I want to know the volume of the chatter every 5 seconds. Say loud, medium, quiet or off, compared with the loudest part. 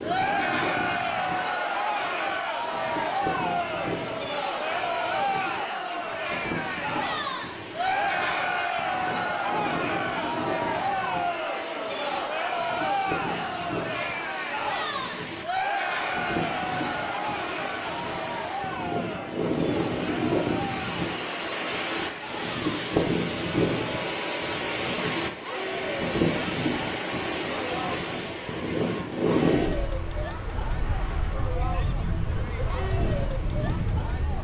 loud, loud, loud, loud, medium, medium, medium.